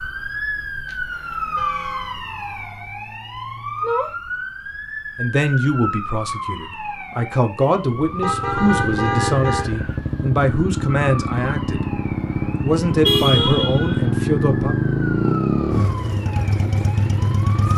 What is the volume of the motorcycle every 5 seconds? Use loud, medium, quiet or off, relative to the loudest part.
off, medium, loud, loud.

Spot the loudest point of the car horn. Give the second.
13 s.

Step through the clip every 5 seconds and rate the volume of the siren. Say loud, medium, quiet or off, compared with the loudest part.
loud, loud, medium, medium.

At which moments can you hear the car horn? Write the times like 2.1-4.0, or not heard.
0.8-2.1, 8.2-9.8, 13.0-13.9.